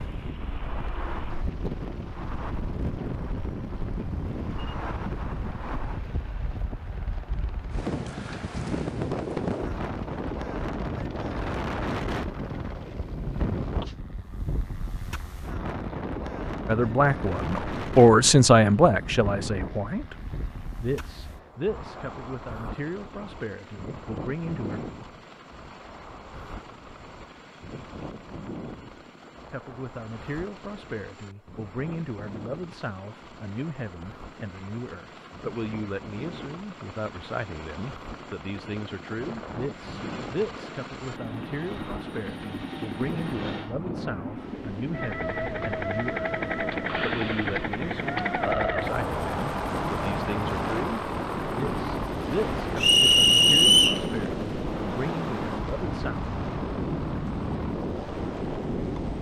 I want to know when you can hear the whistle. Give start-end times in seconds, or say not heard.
52.8-54.0.